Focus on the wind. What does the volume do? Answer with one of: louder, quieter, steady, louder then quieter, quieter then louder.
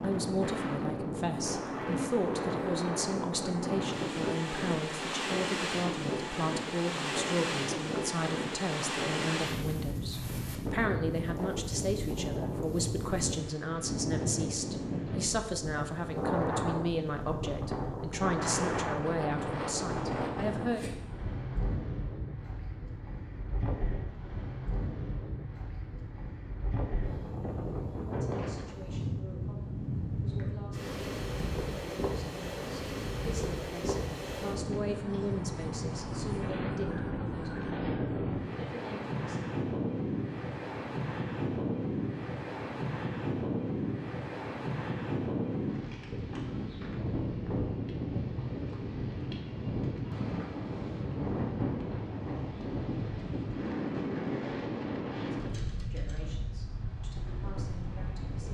steady.